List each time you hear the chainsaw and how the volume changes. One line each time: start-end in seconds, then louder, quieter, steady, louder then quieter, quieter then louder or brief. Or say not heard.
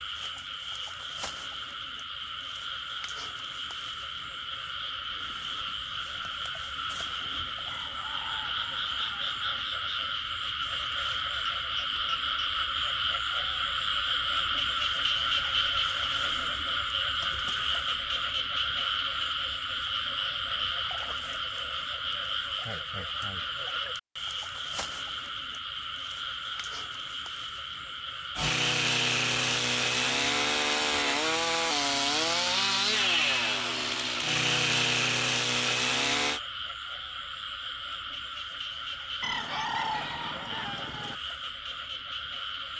28.4-36.4 steady.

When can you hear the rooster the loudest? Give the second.
40 s.